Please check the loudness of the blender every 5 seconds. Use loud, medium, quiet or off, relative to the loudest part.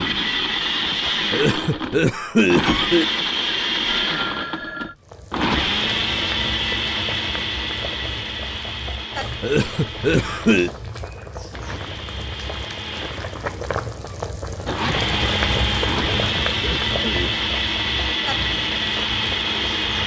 loud, loud, medium, loud.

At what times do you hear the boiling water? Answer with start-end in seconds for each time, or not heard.
5.0-20.0.